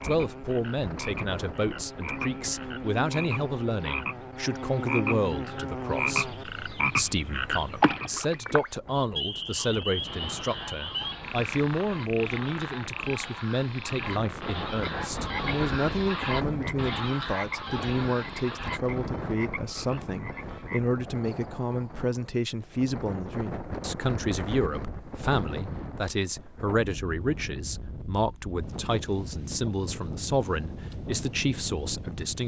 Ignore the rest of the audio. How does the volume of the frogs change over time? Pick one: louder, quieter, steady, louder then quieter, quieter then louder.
louder then quieter.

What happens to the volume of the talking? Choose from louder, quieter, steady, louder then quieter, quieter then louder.
steady.